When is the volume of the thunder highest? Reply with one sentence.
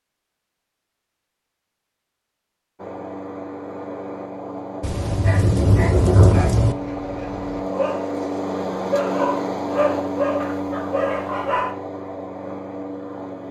The volume of the thunder peaks at 6 seconds.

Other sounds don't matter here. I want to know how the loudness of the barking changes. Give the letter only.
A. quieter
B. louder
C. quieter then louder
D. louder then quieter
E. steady
B.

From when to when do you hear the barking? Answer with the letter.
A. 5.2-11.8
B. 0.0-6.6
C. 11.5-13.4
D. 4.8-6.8
A.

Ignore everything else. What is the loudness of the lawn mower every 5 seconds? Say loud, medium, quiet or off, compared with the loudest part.
medium, loud, loud.